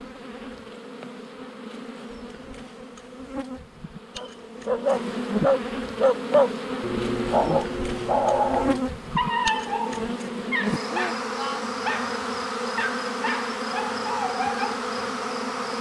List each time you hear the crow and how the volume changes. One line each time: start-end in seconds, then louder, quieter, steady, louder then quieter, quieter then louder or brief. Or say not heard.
not heard.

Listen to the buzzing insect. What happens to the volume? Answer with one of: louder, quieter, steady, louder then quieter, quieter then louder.
louder.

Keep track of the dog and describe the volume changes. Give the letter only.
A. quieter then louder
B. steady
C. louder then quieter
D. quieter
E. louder
D.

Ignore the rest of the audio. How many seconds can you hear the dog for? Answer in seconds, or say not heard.
11 s.